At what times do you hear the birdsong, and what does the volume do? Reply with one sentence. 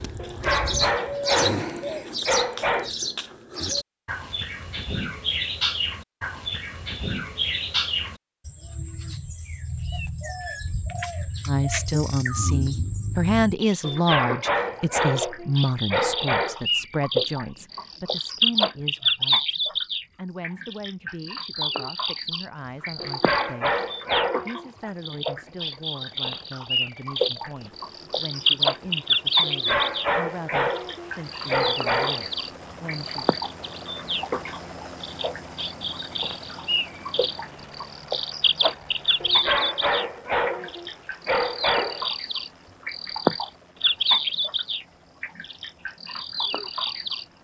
You can hear the birdsong from 0.0 to 47.2 s, at a steady volume.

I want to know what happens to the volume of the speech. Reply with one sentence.
The volume of the speech goes down.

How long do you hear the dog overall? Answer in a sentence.
You can hear the dog for 13 seconds altogether.